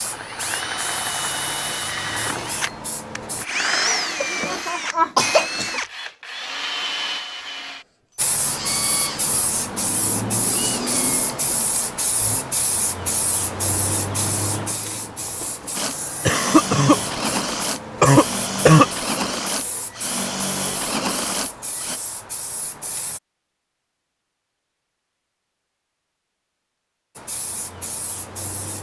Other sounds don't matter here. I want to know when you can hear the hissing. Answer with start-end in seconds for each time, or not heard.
0.0-3.5, 8.2-23.2, 27.1-28.7.